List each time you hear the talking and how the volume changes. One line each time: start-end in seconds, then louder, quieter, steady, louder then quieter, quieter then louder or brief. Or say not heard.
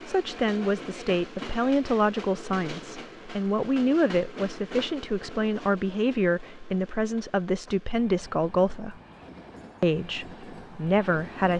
0.1-8.9 steady
9.8-11.5 brief.